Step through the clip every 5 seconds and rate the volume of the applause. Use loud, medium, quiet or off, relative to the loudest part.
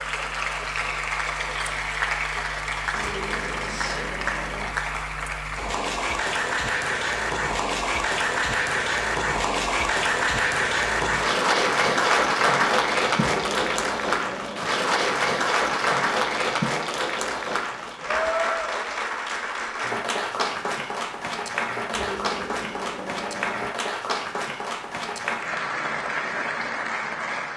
medium, loud, loud, loud, medium, medium.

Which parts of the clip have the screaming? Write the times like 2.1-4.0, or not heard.
2.9-4.8, 13.2-14.7, 21.9-23.7.